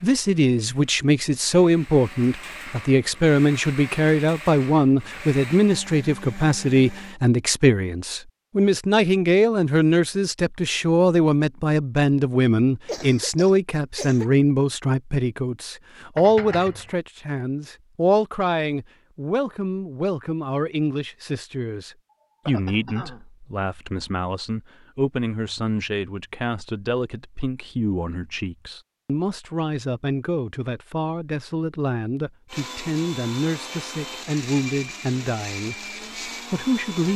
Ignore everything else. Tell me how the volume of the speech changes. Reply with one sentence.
The loudness of the speech goes down.